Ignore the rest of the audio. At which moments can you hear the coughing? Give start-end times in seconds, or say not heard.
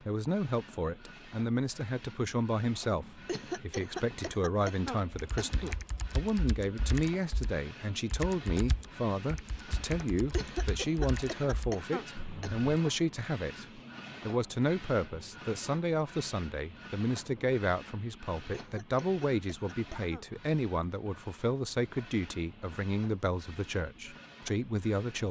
3.2-5.8, 10.3-12.6, 18.5-20.2.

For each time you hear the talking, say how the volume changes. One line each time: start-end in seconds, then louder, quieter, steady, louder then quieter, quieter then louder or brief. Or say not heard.
0.1-25.2 steady.